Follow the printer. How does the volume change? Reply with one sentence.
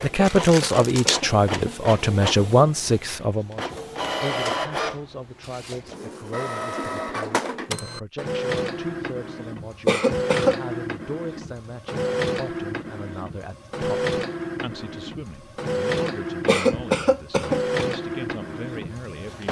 The loudness of the printer stays about the same.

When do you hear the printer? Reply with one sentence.
The printer can be heard from 0.0 to 19.4 s.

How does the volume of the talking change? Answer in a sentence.
The loudness of the talking goes down.